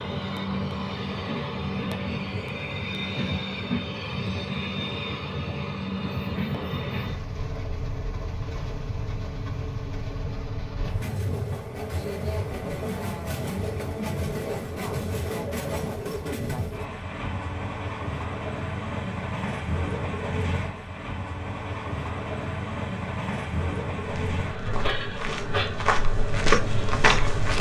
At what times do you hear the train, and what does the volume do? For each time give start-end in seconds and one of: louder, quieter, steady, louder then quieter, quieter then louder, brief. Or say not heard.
0.0-27.5 steady.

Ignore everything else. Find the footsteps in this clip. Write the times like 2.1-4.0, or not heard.
24.0-27.5.